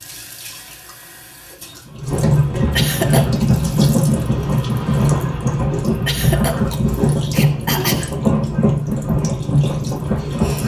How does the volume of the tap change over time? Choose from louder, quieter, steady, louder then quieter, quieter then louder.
louder.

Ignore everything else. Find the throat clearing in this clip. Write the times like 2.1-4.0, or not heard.
2.8-3.5, 6.0-8.2.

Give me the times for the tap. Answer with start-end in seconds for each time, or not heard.
0.0-10.6.